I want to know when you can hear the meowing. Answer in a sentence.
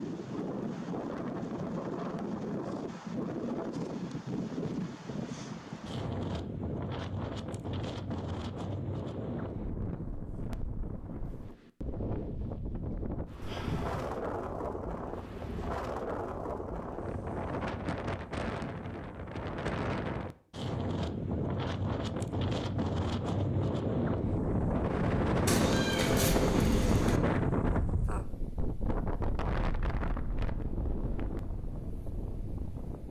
You can hear the meowing from 13.4 to 14.2 s and from 25.4 to 27.2 s.